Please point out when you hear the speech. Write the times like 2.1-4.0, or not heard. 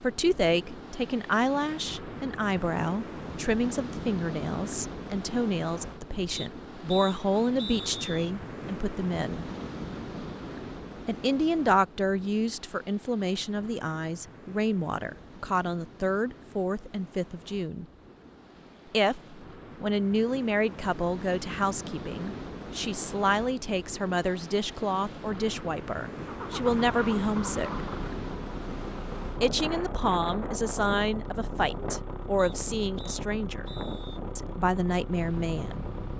0.0-9.5, 11.1-17.9, 18.9-27.9, 29.4-33.6, 34.4-35.9.